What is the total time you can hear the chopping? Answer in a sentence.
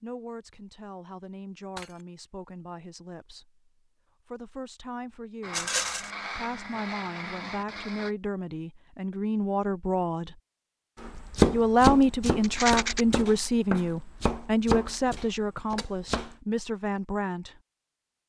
The chopping can be heard for 5 seconds in total.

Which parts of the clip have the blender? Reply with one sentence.
The blender can be heard from 5.4 to 8.2 s.